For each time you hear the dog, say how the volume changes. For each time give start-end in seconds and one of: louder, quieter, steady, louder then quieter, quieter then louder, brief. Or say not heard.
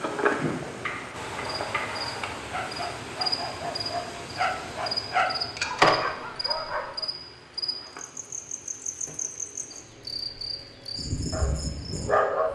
2.5-6.9 louder
11.3-12.5 brief.